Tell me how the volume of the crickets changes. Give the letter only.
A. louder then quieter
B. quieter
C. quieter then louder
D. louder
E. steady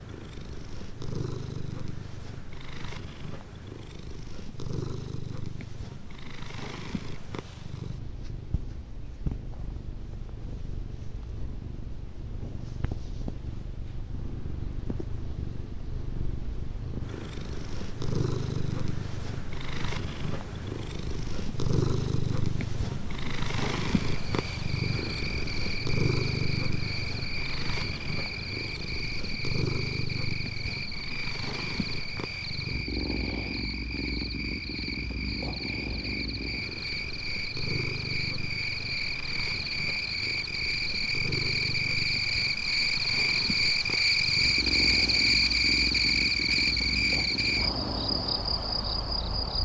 D.